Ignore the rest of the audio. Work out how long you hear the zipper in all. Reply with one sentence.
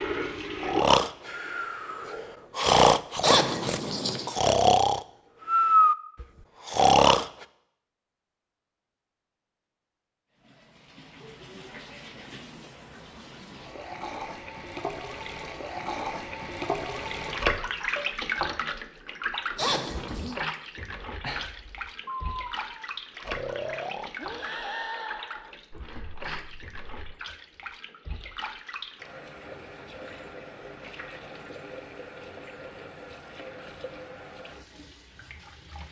You can hear the zipper for 2 seconds altogether.